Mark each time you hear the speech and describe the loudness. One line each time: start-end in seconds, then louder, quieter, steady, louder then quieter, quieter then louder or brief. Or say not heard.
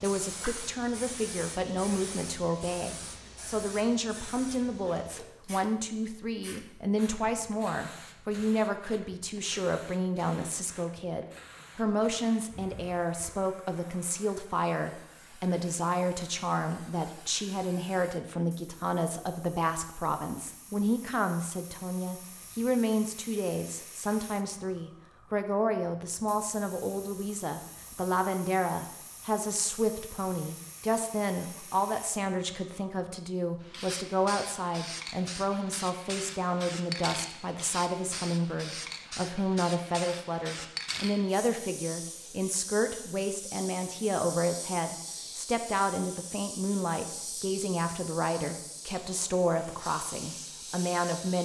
0.0-51.4 steady.